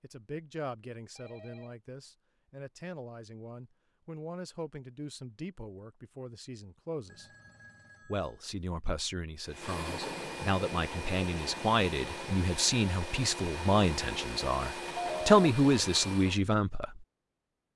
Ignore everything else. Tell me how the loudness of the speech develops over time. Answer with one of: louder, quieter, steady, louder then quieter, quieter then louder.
louder.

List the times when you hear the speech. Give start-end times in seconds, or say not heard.
0.0-7.2, 8.1-17.0.